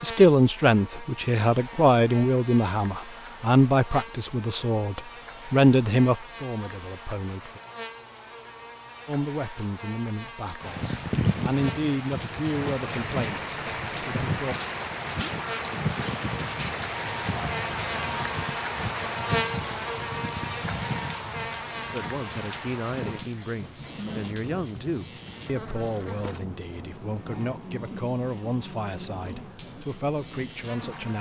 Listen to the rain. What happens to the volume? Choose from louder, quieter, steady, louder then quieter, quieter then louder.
quieter.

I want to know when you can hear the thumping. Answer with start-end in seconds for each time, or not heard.
15.2-15.6.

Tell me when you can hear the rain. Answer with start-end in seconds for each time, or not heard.
10.6-31.1.